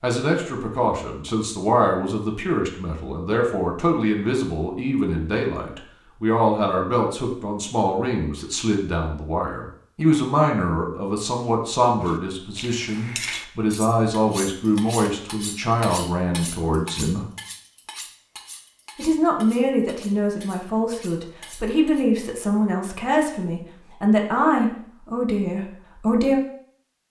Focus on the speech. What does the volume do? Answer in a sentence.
The loudness of the speech stays about the same.